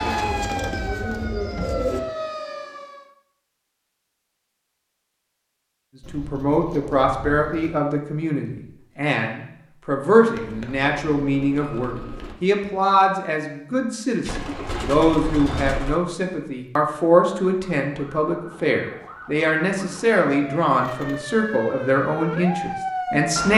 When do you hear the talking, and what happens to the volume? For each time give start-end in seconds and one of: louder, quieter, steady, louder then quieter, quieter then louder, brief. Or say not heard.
6.1-23.5 steady.